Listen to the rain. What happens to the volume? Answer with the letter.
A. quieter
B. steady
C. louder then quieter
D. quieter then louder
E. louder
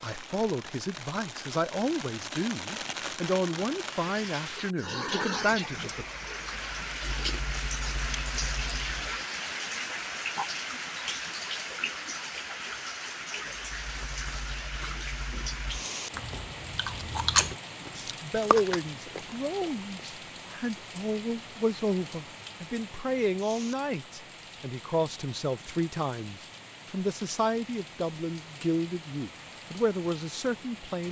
A.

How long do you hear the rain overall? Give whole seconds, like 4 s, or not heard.
31 s.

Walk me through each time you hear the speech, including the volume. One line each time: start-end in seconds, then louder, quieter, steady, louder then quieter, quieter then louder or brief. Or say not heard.
0.0-6.0 steady
17.8-31.0 steady.